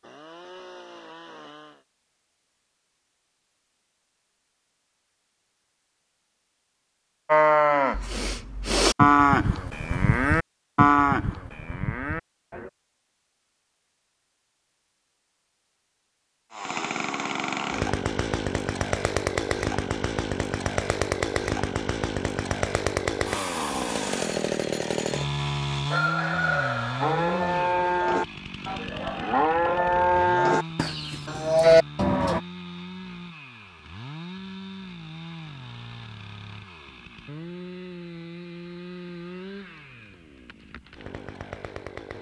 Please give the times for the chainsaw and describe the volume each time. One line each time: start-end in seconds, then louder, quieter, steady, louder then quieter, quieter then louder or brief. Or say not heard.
0.0-1.9 brief
16.5-42.1 quieter.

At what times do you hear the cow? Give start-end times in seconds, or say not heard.
7.2-12.7, 27.0-32.4.